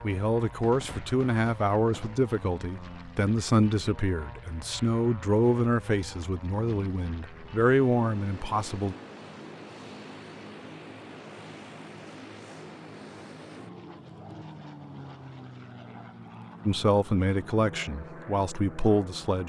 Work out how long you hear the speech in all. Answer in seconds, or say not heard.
12 s.